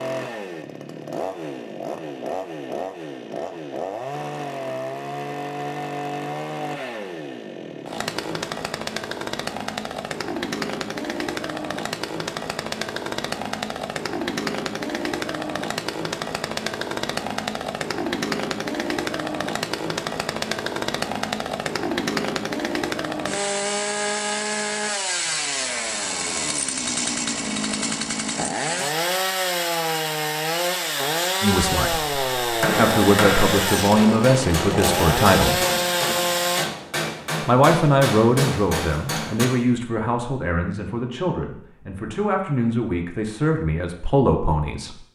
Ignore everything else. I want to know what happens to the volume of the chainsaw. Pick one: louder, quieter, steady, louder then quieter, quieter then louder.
louder.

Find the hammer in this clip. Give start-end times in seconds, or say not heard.
32.6-39.5.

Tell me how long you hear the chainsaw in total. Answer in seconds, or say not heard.
37 s.